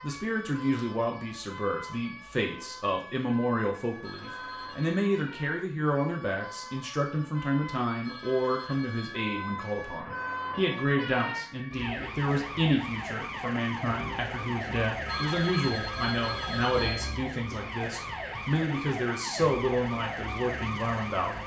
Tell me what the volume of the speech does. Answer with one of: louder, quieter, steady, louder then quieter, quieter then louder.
steady.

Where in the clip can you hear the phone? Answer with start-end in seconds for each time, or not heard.
4.0-5.0, 8.0-9.2, 15.1-17.1.